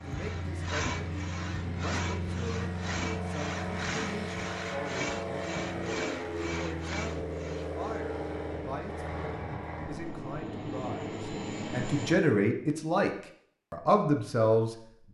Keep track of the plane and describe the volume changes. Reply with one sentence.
The loudness of the plane stays about the same.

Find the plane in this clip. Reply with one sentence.
You can hear the plane from 0.0 to 12.2 s.